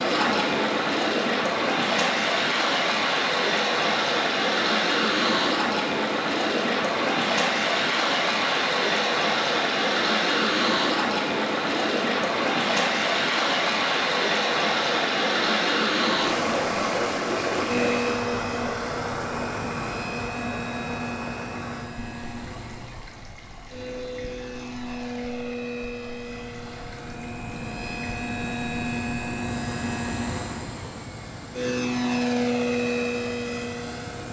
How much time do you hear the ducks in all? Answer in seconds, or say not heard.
not heard.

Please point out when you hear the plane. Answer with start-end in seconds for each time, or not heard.
17.6-34.2.